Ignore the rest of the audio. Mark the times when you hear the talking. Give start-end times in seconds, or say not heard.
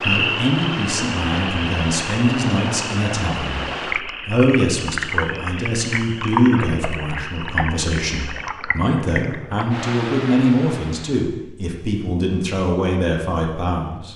0.0-3.6, 4.2-14.1.